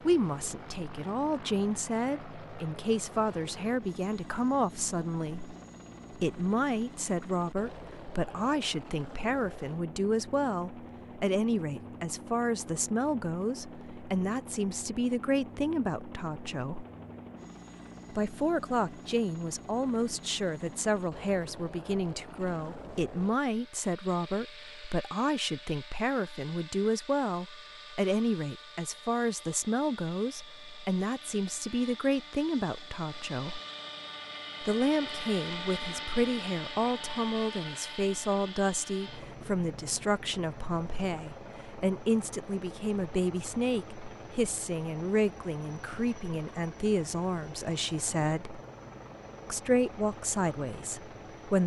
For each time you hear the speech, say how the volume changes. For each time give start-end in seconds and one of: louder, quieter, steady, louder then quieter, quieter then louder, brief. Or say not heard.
0.0-16.9 steady
18.1-33.6 steady
34.6-48.6 steady
49.5-51.6 brief.